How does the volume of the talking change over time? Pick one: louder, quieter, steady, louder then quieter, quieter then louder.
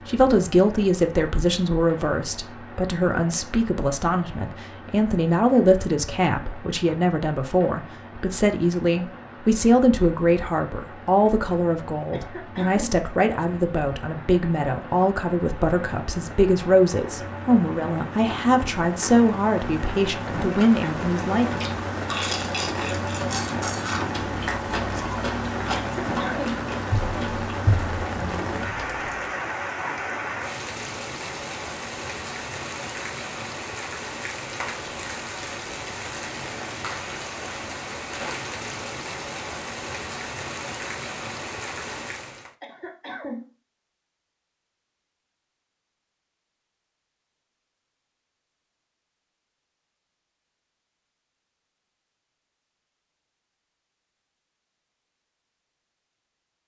steady.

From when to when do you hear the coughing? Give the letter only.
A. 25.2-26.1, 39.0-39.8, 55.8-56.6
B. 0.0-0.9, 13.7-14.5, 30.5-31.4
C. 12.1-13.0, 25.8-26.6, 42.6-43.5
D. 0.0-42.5
C.